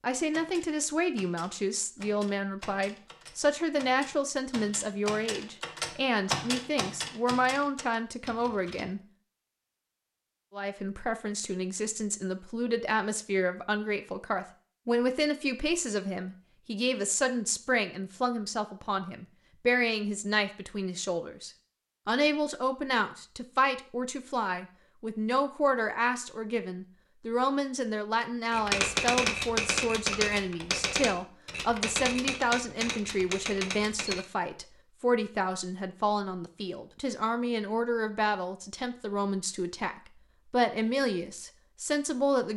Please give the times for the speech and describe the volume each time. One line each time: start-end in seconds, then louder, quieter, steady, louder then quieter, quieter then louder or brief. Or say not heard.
0.0-9.0 steady
10.5-42.5 steady.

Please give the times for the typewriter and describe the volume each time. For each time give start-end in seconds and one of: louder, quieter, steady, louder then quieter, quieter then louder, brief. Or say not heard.
0.3-8.9 louder then quieter
28.5-34.2 quieter.